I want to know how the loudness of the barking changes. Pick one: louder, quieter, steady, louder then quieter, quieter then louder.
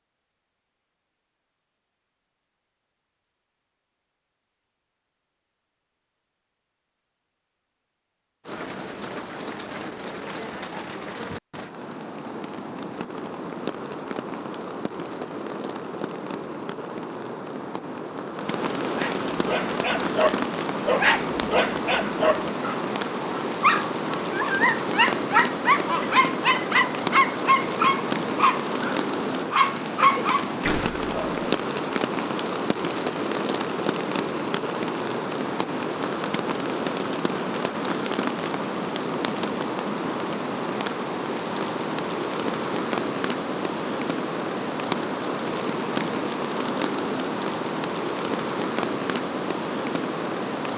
steady.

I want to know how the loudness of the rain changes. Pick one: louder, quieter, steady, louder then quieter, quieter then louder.
louder.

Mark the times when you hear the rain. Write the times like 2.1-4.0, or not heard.
8.4-50.7.